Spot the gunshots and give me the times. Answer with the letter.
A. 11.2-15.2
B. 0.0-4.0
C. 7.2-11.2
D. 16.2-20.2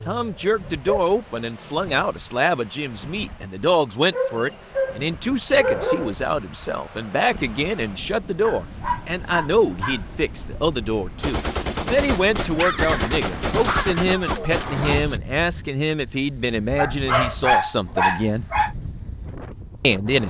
A.